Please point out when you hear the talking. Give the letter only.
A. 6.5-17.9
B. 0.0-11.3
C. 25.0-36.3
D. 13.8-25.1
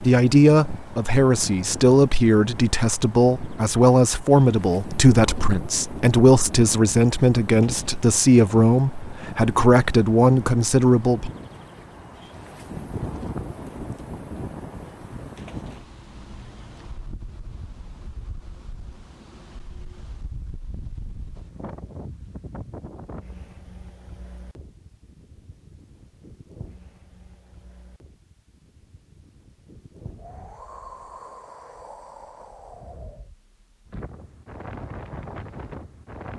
B.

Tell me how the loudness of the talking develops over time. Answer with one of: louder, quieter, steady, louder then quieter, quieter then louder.
steady.